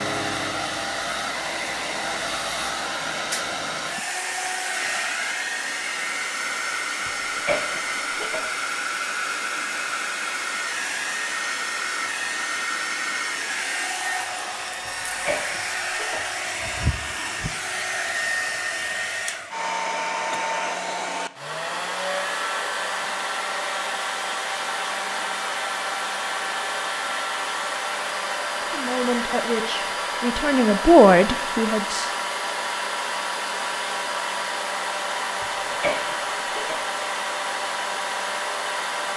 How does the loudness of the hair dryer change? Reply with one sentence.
The volume of the hair dryer stays about the same.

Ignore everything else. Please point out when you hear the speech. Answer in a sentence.
You can hear the speech from 28.7 to 32.1 s.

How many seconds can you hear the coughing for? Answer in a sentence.
The coughing can be heard for 4 seconds in total.